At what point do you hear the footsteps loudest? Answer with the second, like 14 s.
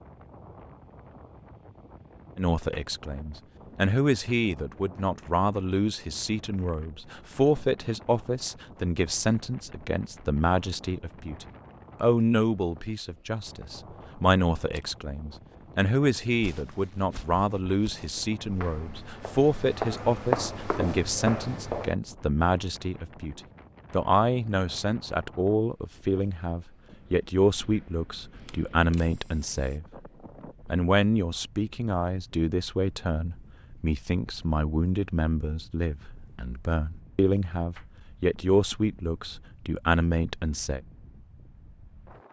20 s.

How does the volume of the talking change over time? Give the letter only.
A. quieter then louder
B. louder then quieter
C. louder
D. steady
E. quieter
D.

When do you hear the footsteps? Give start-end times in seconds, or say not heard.
16.4-21.9.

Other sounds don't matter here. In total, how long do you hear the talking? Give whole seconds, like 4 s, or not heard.
38 s.